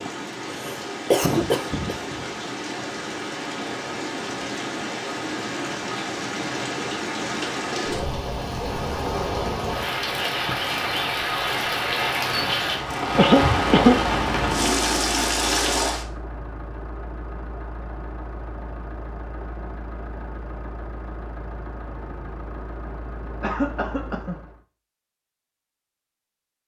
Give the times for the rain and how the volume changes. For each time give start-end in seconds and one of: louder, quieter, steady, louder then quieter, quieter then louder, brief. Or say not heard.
0.0-16.1 louder.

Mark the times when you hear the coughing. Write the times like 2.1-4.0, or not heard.
0.1-2.2, 13.2-14.0, 23.4-24.4.